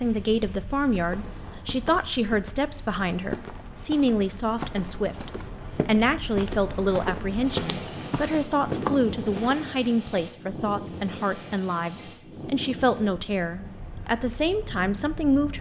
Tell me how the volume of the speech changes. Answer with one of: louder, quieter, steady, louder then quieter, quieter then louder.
steady.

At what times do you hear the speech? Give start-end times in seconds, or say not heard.
0.0-15.5.